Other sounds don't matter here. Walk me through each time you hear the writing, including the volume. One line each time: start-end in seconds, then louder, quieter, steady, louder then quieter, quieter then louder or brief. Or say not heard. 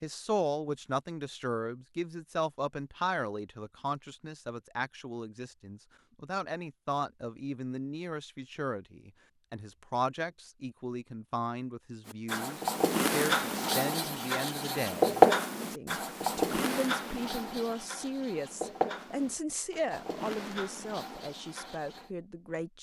12.1-22.1 louder then quieter.